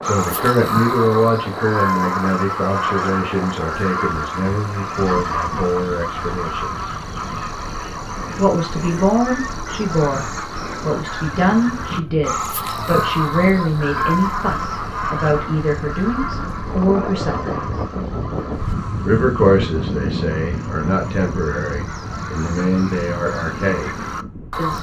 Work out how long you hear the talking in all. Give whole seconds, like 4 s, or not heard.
22 s.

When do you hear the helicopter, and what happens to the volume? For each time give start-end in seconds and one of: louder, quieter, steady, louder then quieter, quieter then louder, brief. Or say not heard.
not heard.